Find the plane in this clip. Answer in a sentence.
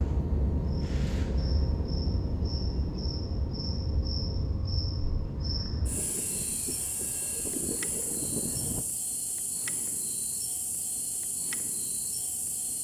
The plane can be heard from 0.0 to 8.8 s.